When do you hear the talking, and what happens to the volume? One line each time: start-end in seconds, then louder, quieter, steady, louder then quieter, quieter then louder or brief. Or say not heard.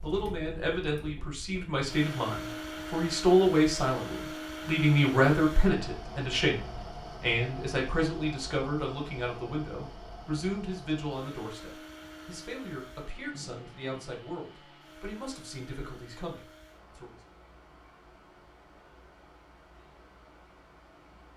0.0-17.1 quieter.